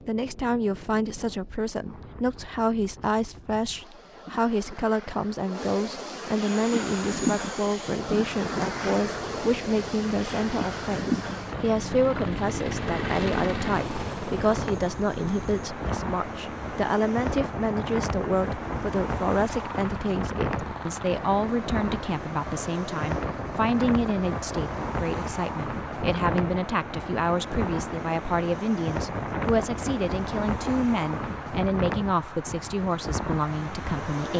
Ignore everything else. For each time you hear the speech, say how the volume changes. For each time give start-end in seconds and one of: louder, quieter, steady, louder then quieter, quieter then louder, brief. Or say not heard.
0.1-34.3 steady.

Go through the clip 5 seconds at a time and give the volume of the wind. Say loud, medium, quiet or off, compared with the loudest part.
quiet, loud, loud, loud, loud, loud, loud.